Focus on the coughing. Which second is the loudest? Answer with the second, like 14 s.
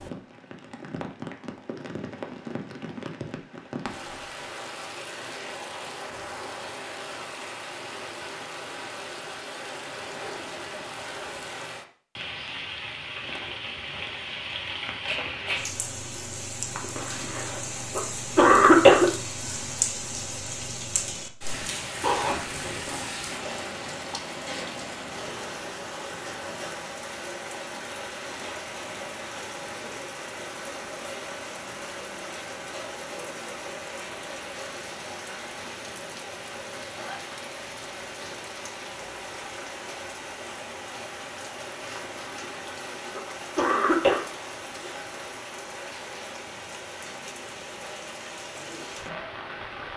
19 s.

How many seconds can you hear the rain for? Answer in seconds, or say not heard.
50 s.